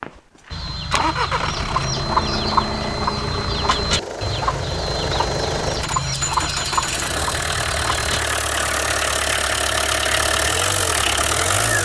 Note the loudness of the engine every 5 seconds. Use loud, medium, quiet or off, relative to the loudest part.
medium, loud, loud.